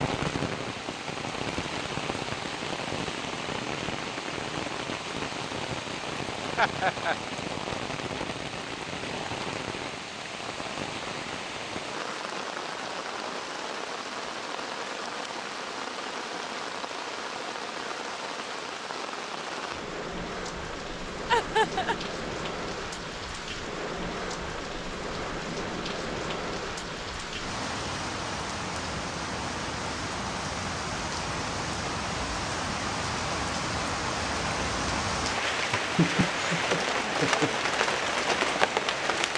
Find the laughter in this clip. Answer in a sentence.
The laughter can be heard from 6.5 to 7.2 s, from 21.3 to 21.9 s and from 35.7 to 37.5 s.